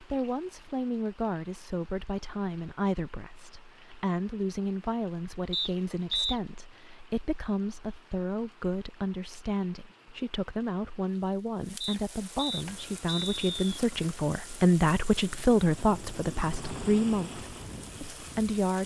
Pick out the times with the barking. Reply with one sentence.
The barking can't be heard in this clip.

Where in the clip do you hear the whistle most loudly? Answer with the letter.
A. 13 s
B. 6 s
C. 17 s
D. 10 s
B.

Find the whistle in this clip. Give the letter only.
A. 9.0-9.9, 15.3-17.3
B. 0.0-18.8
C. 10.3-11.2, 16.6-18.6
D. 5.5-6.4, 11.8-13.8
D.